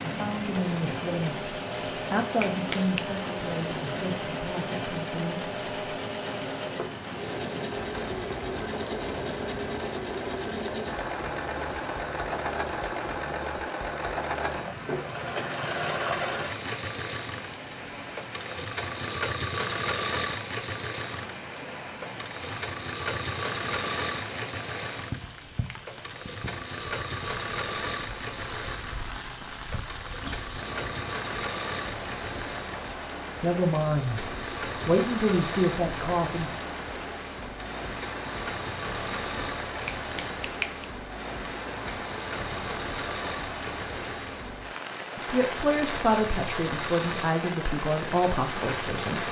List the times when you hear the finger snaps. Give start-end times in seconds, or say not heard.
2.4-3.0, 39.9-40.9.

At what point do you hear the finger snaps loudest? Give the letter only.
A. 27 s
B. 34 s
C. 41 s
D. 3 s
D.